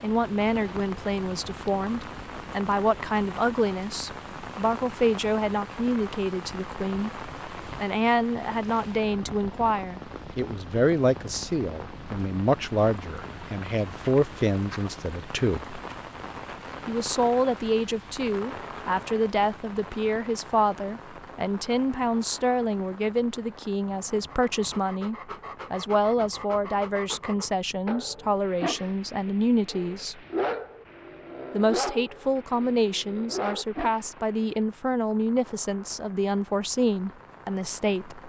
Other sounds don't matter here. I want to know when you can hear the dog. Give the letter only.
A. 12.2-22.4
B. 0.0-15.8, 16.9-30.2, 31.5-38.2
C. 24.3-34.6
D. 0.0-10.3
C.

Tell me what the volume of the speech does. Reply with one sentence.
The volume of the speech stays about the same.